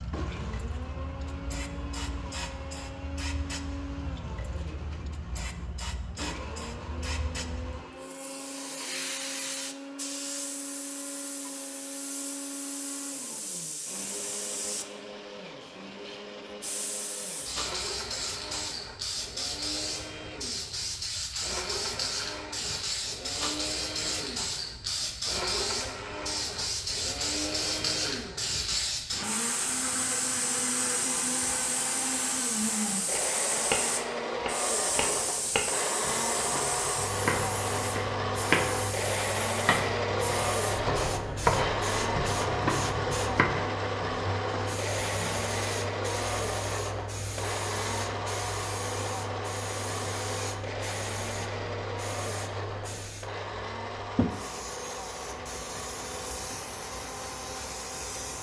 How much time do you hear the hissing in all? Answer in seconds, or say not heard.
58 s.